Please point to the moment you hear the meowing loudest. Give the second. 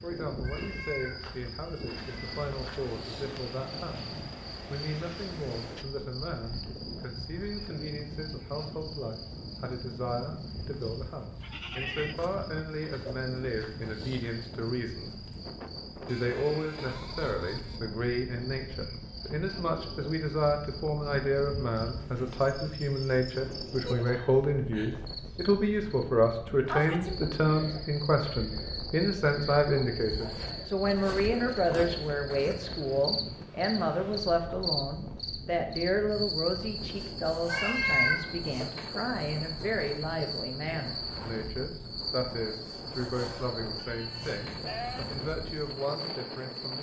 38 s.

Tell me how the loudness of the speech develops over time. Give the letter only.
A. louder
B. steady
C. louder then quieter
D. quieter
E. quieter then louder
C.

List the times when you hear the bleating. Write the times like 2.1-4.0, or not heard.
11.4-12.3, 16.1-17.9, 43.8-45.0.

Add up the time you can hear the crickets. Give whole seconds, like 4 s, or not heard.
47 s.